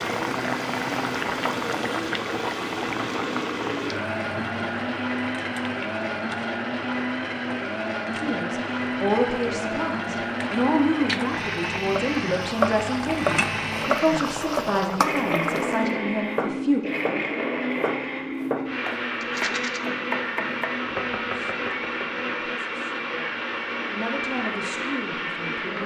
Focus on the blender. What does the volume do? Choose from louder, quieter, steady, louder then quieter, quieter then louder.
steady.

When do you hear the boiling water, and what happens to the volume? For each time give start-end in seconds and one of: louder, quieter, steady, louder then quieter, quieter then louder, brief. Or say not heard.
0.0-15.9 quieter then louder.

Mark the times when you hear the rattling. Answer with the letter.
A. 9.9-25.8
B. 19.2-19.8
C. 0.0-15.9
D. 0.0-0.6
B.